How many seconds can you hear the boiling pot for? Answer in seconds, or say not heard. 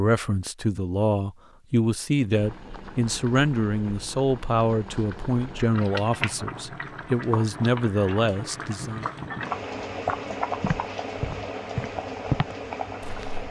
11 s.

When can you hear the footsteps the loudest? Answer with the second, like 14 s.
12 s.